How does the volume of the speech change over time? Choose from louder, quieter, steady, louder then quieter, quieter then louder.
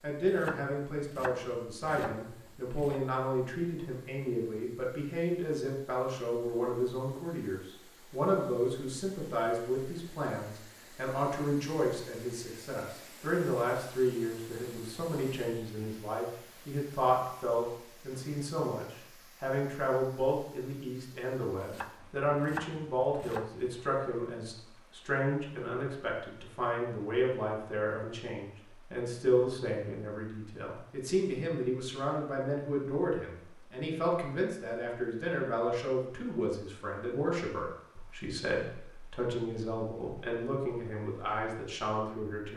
steady.